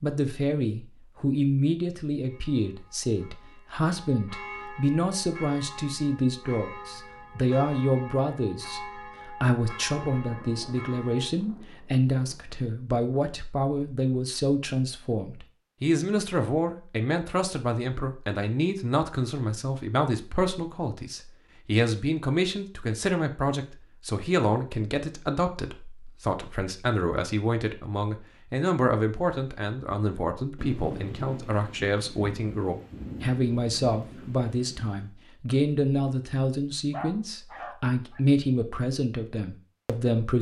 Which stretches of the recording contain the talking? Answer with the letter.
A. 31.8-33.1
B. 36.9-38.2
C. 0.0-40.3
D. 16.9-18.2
C.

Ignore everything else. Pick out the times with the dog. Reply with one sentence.
You can hear the dog from 36.9 to 38.2 s.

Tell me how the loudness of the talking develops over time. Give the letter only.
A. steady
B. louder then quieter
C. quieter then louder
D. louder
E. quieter
A.